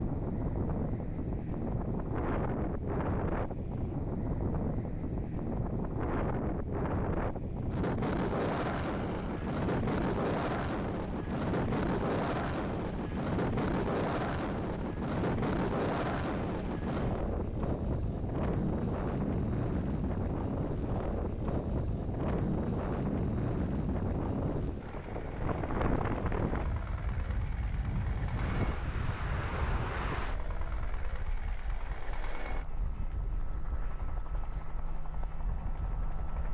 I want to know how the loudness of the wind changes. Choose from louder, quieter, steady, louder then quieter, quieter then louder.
quieter.